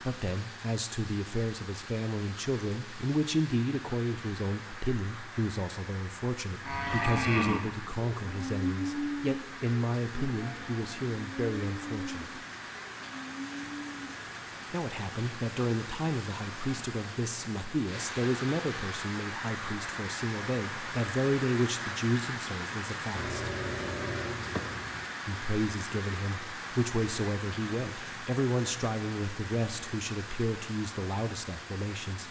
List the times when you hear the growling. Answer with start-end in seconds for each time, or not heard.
23.1-25.1.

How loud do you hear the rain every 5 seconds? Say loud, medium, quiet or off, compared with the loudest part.
medium, medium, medium, loud, loud, loud, medium.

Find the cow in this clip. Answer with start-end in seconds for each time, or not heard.
6.6-14.2.